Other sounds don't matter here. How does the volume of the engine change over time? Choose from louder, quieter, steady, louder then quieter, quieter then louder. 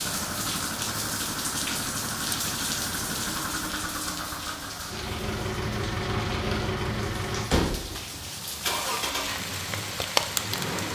steady.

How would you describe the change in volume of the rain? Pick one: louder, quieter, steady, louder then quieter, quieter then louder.
quieter then louder.